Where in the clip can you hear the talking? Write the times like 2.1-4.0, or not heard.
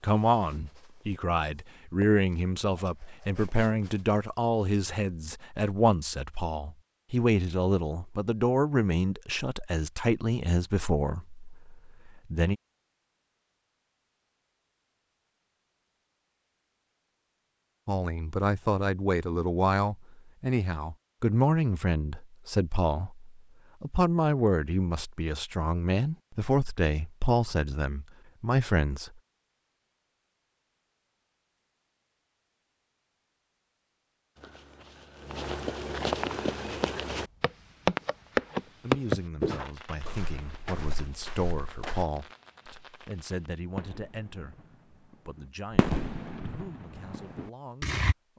0.0-12.6, 17.9-29.1, 38.6-48.3.